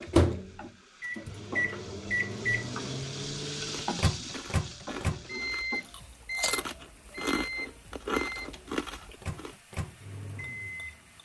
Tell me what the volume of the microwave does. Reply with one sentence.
The volume of the microwave goes down.